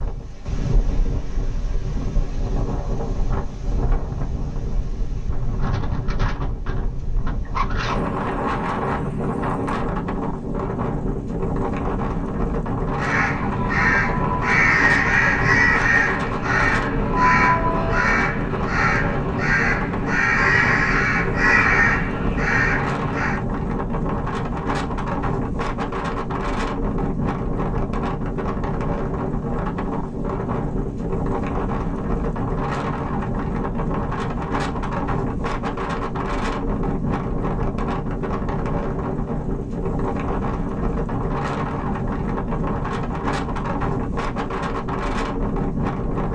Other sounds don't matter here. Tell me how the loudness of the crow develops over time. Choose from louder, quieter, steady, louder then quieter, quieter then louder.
steady.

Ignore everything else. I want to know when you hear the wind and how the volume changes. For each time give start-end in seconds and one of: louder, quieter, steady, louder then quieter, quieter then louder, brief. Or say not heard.
0.0-46.3 steady.